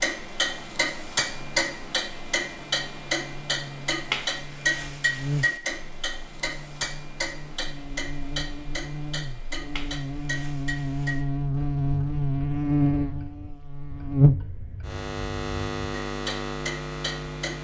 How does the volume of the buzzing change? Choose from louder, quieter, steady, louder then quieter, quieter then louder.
louder.